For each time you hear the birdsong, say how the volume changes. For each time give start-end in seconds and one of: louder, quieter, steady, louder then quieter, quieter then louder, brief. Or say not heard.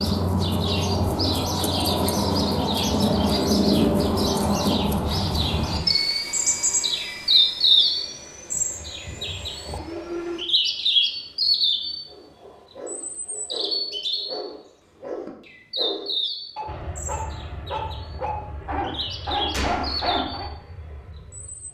0.0-21.6 quieter.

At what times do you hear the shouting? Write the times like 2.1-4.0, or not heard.
not heard.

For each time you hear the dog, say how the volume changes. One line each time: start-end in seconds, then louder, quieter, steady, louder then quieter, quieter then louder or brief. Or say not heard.
12.1-20.5 louder.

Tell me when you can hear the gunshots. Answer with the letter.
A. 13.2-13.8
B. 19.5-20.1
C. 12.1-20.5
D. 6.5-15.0
B.